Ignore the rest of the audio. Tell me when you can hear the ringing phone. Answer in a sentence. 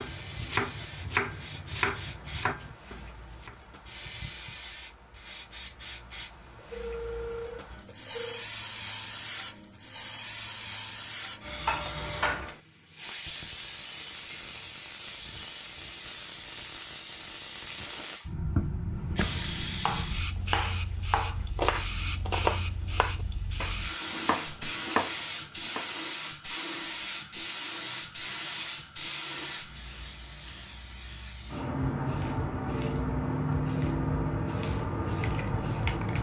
The ringing phone can be heard from 6.5 to 8.4 s.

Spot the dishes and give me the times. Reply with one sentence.
The dishes can be heard from 11.4 to 12.6 s.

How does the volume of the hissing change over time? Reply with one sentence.
The loudness of the hissing goes up.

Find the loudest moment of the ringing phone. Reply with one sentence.
The volume of the ringing phone peaks at 7 seconds.